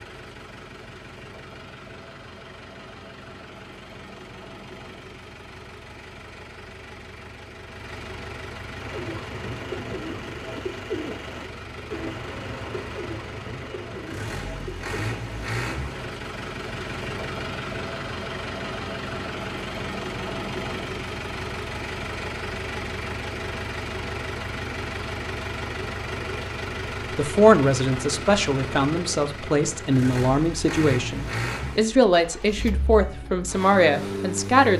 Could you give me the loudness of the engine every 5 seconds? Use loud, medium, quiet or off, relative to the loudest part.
medium, medium, medium, loud, loud, loud, loud.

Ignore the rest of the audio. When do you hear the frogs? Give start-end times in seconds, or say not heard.
not heard.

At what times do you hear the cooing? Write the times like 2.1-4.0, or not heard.
8.8-15.9.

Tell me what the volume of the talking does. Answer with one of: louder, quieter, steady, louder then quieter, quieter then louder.
steady.